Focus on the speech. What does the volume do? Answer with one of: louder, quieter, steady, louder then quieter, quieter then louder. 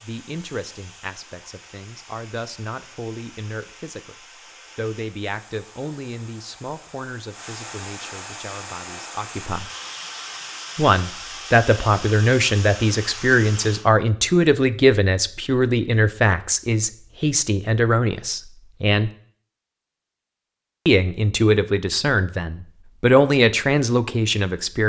louder.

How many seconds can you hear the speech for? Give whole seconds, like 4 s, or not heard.
21 s.